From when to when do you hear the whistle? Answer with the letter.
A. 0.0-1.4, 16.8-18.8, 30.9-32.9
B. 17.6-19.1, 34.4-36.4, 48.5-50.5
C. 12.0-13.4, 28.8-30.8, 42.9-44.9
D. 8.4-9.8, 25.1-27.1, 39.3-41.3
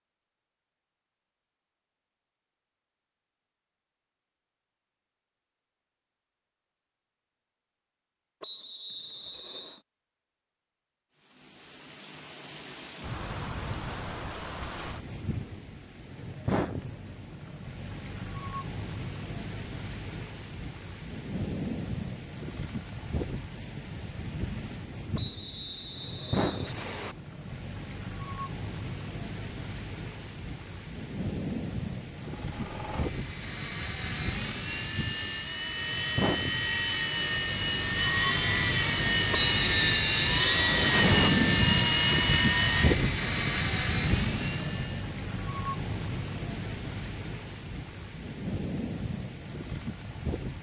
D.